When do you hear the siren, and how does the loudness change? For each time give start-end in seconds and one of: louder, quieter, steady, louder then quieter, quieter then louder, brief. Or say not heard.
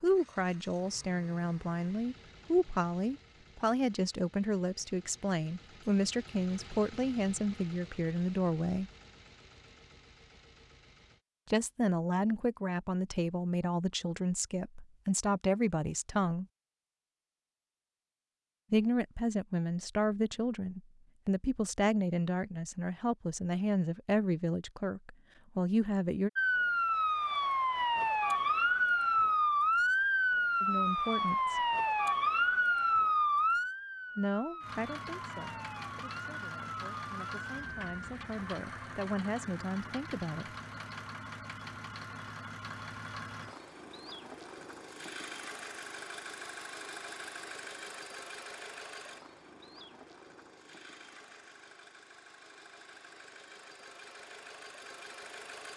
26.4-37.9 quieter.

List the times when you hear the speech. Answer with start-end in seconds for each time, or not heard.
0.0-8.9, 11.4-16.4, 18.7-26.3, 30.6-31.6, 34.1-40.5.